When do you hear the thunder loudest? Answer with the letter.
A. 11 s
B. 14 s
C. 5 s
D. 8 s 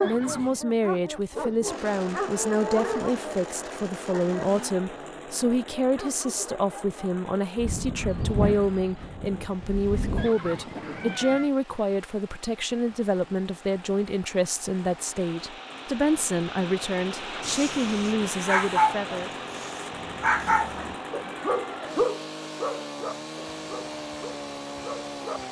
D.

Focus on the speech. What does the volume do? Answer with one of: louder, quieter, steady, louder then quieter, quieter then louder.
steady.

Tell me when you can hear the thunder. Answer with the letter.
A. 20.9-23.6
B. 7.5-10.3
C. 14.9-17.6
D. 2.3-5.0
B.